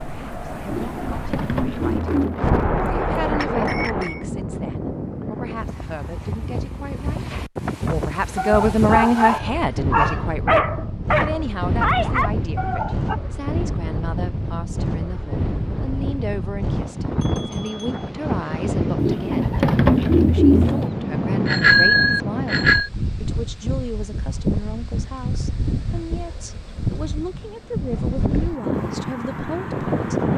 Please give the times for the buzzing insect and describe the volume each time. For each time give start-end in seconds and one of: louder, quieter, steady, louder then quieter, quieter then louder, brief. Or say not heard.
not heard.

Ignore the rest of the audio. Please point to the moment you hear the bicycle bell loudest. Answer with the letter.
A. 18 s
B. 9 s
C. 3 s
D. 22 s
D.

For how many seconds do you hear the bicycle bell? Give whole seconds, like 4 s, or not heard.
4 s.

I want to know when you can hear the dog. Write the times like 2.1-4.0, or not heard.
8.3-13.2.